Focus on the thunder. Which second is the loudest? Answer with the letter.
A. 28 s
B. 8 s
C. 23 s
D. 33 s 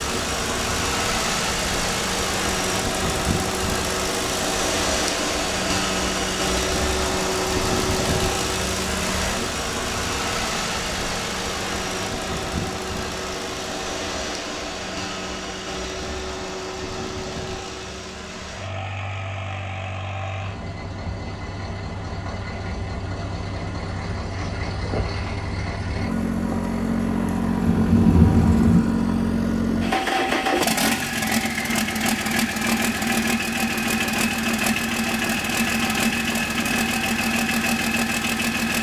A.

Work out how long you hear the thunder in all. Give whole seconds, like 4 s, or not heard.
3 s.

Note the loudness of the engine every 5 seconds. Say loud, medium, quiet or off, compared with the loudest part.
loud, loud, medium, medium, medium, loud, loud, loud.